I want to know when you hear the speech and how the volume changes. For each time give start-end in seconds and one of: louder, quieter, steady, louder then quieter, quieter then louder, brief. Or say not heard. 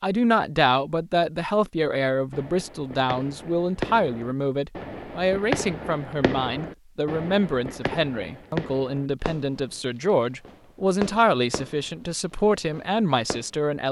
0.0-13.8 steady.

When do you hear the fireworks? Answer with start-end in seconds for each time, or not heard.
2.3-13.4.